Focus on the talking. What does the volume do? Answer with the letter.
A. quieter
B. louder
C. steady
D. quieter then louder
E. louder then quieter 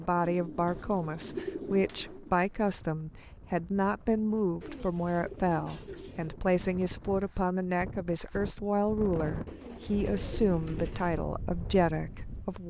C.